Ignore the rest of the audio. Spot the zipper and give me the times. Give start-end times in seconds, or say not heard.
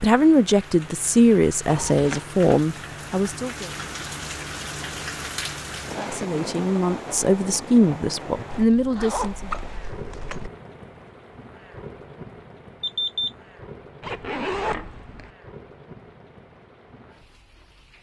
1.6-2.2, 8.5-10.5, 14.0-15.3.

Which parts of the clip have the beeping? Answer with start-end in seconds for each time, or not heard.
12.8-13.3.